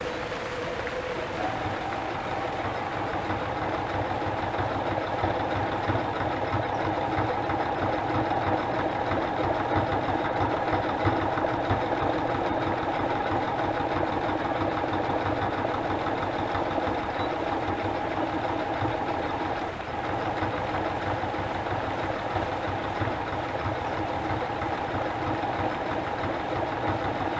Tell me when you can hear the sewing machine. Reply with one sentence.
You can hear the sewing machine from 0.0 to 27.3 s.